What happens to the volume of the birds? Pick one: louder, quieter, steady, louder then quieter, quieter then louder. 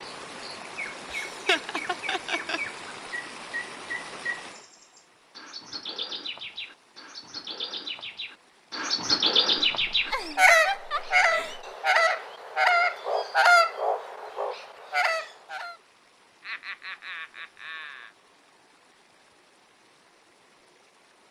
louder.